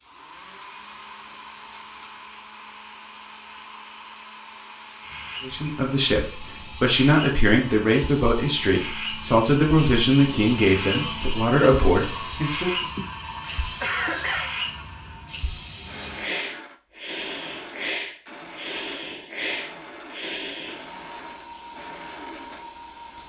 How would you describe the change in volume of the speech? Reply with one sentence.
The volume of the speech stays about the same.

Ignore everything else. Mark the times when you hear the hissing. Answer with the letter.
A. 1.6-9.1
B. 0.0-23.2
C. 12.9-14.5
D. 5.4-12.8
B.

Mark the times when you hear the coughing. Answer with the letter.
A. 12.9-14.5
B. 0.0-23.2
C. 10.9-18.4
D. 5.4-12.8
A.